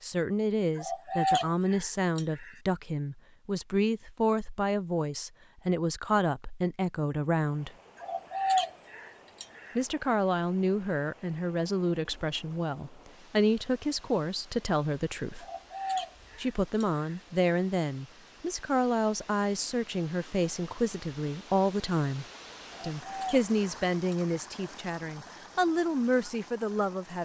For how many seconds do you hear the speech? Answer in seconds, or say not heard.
24 s.